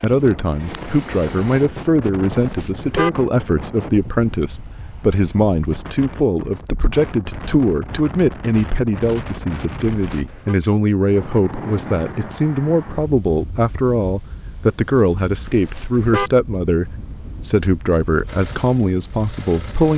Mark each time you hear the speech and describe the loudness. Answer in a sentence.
The speech can be heard from 0.0 to 19.9 s, at a steady volume.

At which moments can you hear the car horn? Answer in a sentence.
You can hear the car horn from 2.3 to 3.1 s, from 9.8 to 10.6 s and from 15.4 to 16.3 s.